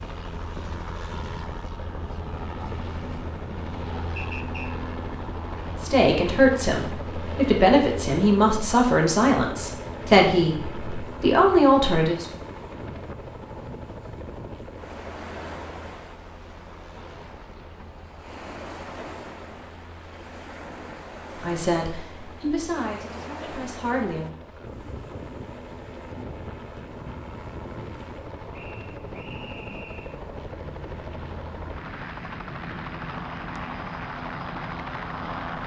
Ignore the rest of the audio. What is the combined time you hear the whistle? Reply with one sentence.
You can hear the whistle for 2 seconds altogether.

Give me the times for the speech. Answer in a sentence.
You can hear the speech from 5.8 to 12.2 s and from 21.4 to 24.3 s.